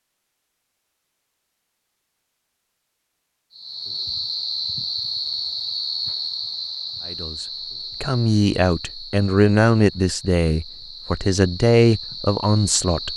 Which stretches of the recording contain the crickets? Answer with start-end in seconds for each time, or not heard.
3.5-13.1.